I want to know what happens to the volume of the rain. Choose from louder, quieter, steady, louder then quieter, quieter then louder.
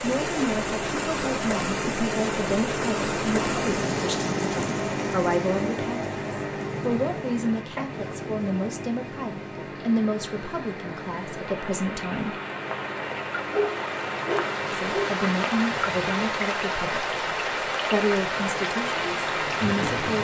quieter then louder.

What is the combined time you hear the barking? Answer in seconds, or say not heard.
2 s.